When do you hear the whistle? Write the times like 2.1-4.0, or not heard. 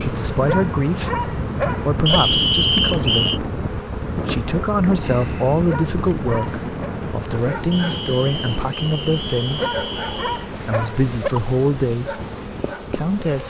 2.0-3.4, 7.7-10.3.